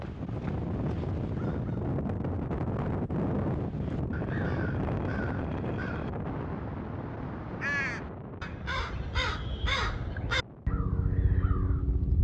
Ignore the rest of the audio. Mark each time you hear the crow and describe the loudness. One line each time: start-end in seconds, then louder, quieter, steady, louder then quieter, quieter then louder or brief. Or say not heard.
0.0-1.9 brief
3.5-12.1 louder.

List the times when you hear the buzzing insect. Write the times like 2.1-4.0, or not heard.
not heard.